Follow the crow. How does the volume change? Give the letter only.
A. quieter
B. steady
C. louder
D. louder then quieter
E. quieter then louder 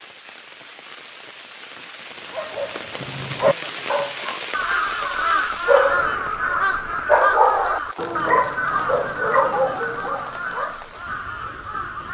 A.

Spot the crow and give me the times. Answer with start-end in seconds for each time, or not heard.
4.5-12.0.